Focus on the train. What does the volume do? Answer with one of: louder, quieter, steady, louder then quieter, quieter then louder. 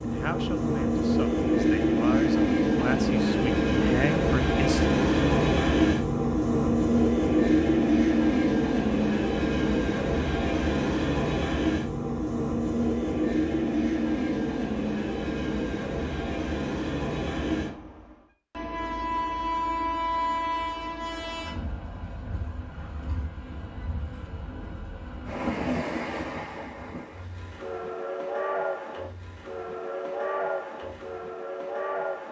quieter.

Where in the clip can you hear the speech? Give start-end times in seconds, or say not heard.
0.0-4.9.